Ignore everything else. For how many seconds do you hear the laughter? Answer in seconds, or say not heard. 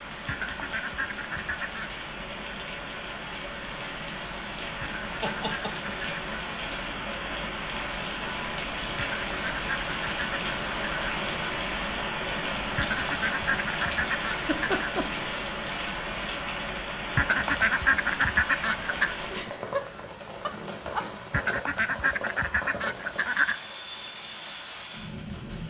4 s.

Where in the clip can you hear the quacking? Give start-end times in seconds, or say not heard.
0.2-2.0, 4.8-6.2, 8.9-11.2, 12.8-14.9, 17.1-19.1, 21.3-23.6.